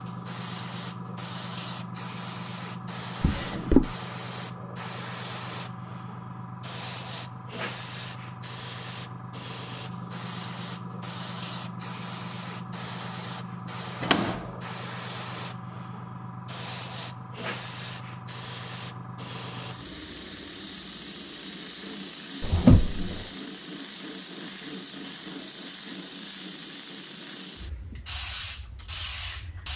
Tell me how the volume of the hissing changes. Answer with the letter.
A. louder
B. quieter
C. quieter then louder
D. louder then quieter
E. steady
E.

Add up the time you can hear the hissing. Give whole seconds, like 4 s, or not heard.
30 s.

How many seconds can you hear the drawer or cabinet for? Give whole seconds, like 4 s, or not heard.
2 s.